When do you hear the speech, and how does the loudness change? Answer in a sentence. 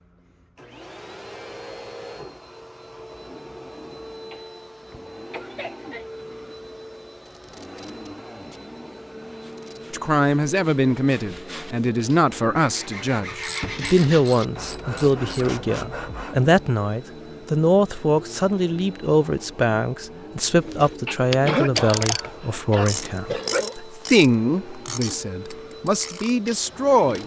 The speech can be heard from 9.9 to 27.2 s, at a steady volume.